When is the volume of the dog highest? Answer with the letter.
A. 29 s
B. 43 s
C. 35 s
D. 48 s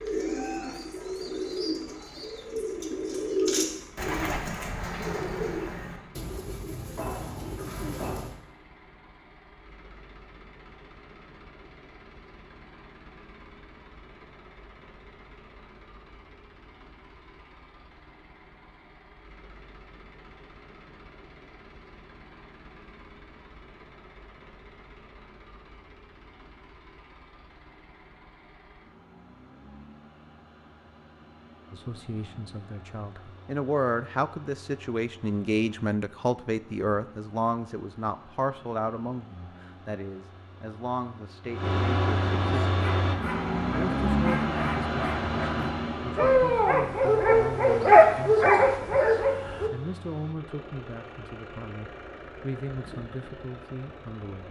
D.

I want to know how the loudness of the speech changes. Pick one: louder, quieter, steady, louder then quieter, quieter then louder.
quieter.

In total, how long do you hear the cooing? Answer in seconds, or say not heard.
8 s.